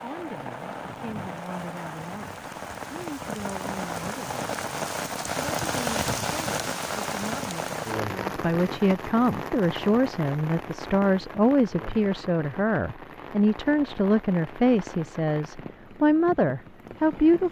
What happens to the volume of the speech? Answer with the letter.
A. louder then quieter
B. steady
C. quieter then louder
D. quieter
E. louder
E.